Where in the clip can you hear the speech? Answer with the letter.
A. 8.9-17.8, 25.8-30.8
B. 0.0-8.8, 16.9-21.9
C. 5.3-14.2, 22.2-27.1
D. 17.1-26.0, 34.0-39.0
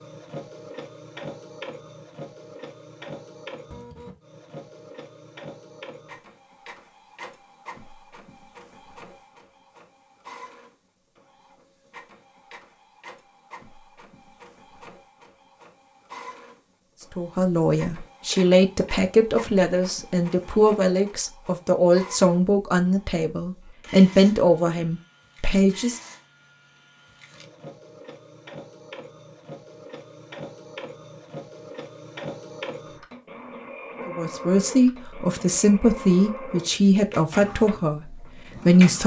D.